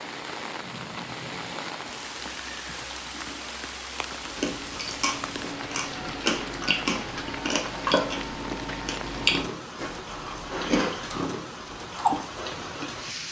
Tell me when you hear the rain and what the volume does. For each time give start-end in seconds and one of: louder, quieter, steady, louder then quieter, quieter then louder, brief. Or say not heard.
0.0-13.2 steady.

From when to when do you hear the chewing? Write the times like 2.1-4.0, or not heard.
4.2-12.9.